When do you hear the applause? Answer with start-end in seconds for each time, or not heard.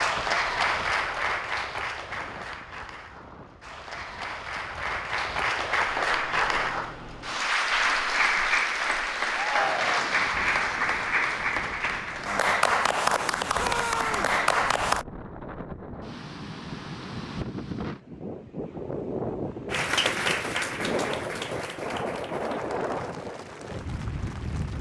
0.0-15.1, 19.7-24.7.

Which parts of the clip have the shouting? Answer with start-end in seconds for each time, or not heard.
9.3-10.1, 13.6-14.3.